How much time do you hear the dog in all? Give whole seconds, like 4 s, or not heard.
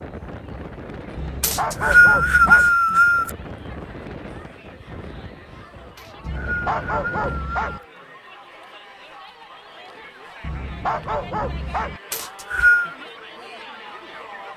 5 s.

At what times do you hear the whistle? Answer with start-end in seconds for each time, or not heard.
1.4-3.3, 6.0-7.8, 12.1-12.9.